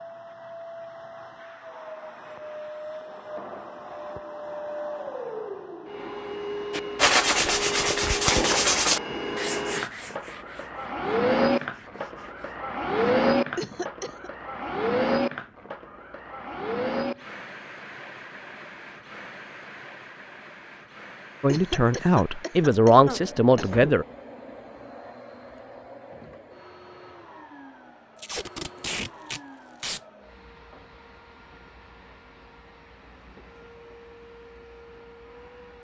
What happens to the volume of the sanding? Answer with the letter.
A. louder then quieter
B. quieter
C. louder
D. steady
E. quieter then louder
B.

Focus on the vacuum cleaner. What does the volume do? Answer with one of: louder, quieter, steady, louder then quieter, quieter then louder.
louder then quieter.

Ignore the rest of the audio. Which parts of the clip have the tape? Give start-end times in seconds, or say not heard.
28.1-30.0.